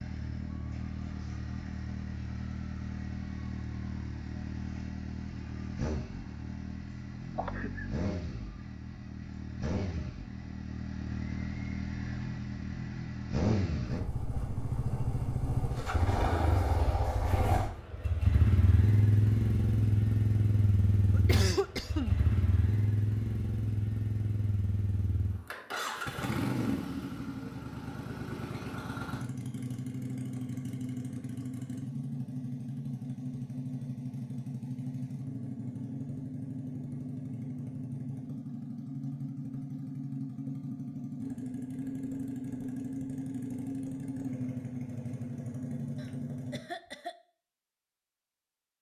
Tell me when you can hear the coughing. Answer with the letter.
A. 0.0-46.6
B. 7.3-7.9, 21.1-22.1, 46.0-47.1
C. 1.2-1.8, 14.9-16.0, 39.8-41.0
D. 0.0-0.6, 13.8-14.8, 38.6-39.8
B.